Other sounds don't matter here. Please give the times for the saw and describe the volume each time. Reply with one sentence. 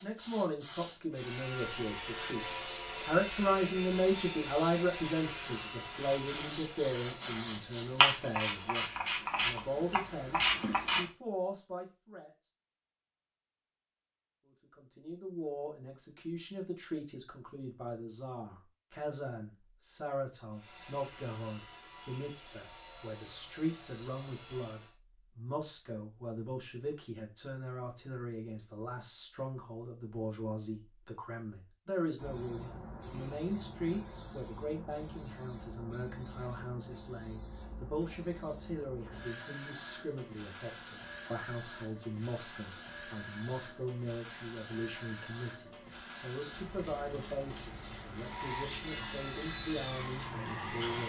The saw can be heard from 1.1 to 8.9 s, getting quieter; from 20.5 to 24.9 s, at a steady volume; and briefly from 48.2 to 51.0 s.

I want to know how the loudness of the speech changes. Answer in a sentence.
The loudness of the speech goes down.